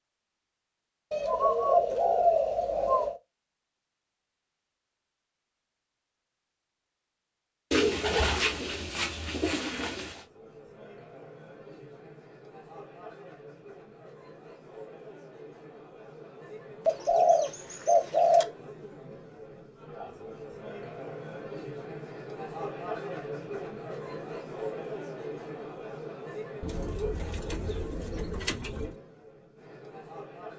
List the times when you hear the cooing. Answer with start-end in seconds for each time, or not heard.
1.1-3.1, 7.7-10.2, 16.9-18.4, 26.6-28.9.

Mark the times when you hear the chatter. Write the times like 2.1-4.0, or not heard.
10.0-30.5.